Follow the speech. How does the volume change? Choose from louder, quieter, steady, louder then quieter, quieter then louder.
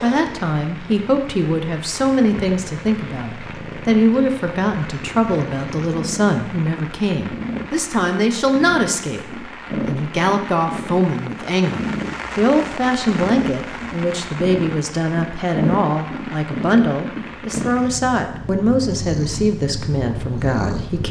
steady.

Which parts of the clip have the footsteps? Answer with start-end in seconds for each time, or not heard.
not heard.